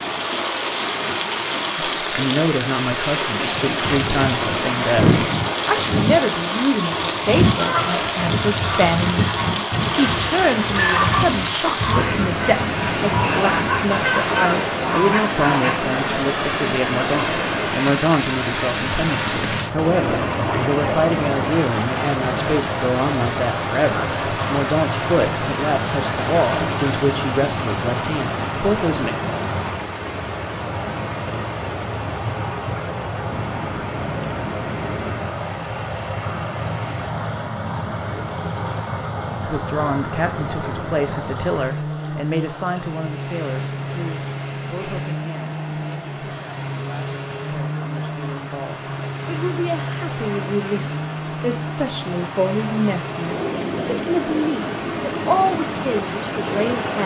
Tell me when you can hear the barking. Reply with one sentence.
You can't hear the barking here.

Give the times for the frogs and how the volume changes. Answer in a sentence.
The frogs can't be heard in this clip.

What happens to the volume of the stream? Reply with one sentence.
The volume of the stream goes down.